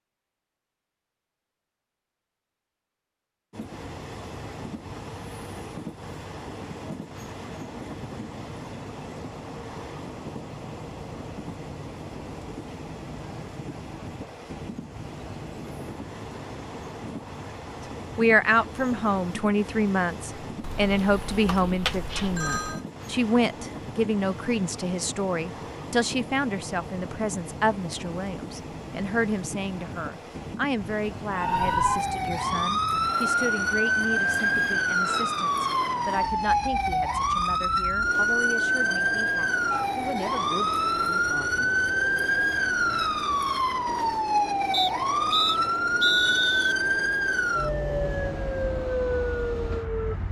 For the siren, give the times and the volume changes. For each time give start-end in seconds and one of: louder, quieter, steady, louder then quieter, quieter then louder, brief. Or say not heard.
31.3-50.2 steady.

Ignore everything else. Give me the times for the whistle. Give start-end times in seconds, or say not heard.
44.7-46.8.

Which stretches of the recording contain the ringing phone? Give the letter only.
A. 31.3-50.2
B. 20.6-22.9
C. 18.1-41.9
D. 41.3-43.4
B.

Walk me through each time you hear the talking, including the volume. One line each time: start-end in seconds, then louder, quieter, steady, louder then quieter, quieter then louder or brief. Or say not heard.
18.1-41.9 quieter.